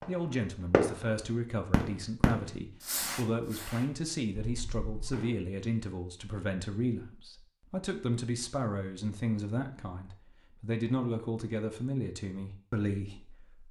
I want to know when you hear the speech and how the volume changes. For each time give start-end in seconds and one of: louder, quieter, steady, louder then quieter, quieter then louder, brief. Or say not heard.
0.1-13.6 steady.